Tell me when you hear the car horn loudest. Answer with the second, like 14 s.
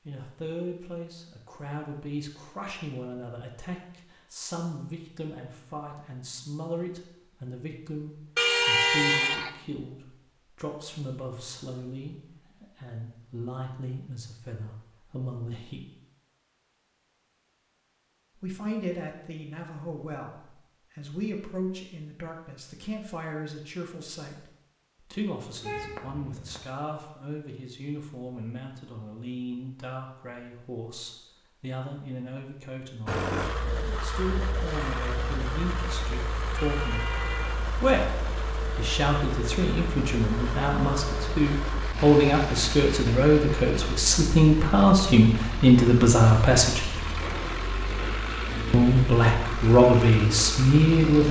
9 s.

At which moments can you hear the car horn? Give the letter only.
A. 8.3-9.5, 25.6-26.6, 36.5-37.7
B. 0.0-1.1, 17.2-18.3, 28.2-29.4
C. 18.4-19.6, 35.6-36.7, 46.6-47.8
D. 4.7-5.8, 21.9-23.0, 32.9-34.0
A.